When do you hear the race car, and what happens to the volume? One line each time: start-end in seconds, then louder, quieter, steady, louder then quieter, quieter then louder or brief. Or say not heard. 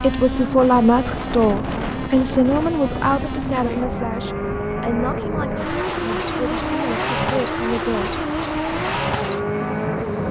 0.0-10.2 louder.